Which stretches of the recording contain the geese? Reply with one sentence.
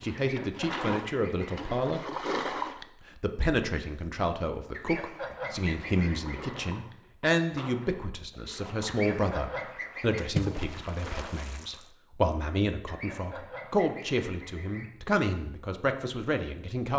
You can hear the geese from 0.2 to 1.6 s, from 4.7 to 6.5 s, from 8.8 to 10.3 s and from 12.8 to 14.9 s.